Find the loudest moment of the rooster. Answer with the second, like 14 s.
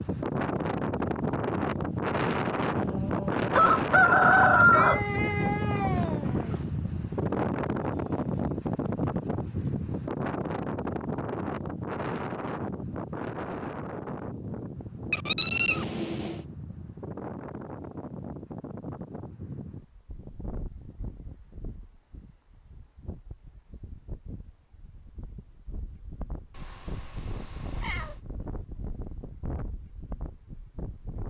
5 s.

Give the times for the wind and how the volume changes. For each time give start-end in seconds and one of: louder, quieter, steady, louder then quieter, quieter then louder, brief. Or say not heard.
0.0-31.2 quieter.